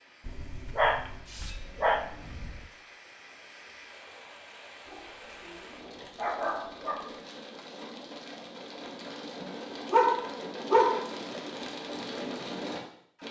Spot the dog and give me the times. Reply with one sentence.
The dog can be heard from 0.2 to 2.6 s, from 4.8 to 7.2 s and from 9.9 to 11.2 s.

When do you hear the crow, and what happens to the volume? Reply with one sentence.
The crow can't be heard in this clip.